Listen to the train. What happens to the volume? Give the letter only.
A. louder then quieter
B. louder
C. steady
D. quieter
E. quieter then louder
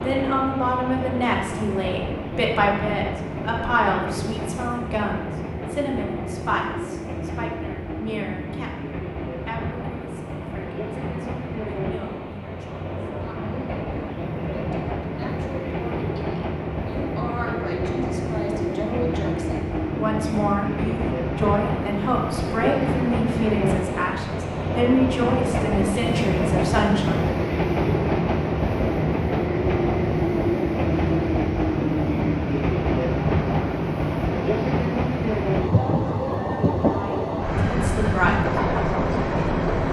B.